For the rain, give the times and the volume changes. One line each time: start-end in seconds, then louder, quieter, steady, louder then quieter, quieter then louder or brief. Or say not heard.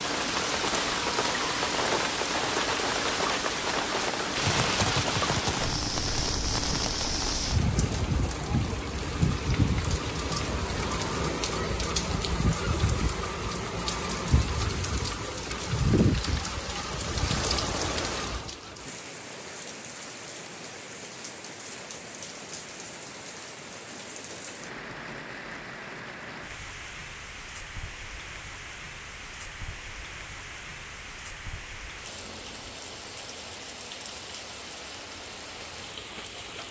0.0-36.6 quieter.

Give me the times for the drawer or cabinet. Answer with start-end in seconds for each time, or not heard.
not heard.